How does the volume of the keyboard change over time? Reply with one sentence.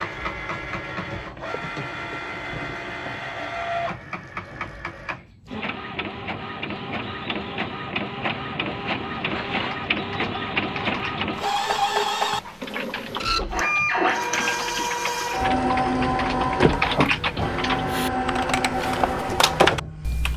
The loudness of the keyboard goes up.